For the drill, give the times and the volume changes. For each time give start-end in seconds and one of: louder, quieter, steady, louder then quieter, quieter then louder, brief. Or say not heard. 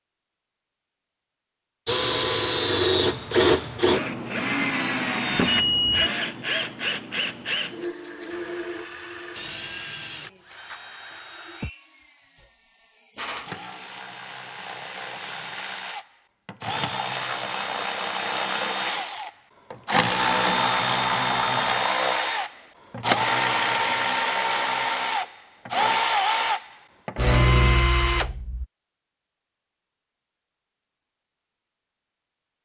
1.9-28.6 quieter then louder.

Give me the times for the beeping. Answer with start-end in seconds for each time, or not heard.
5.3-6.1.